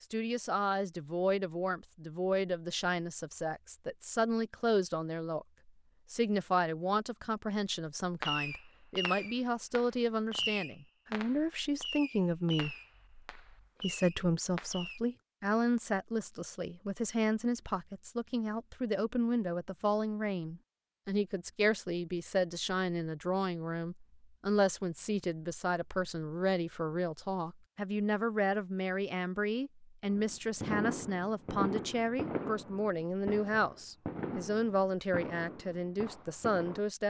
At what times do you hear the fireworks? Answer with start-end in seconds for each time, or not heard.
8.2-15.0, 30.1-36.8.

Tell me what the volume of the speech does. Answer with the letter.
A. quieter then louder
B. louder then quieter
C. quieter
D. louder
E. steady
E.